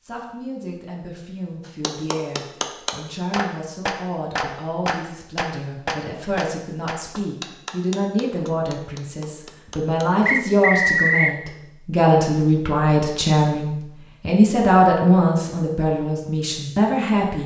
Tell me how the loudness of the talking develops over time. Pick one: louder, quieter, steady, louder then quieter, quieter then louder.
louder.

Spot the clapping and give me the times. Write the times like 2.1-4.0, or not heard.
1.6-10.1.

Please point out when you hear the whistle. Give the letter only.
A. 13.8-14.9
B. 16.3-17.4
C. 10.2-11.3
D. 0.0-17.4
C.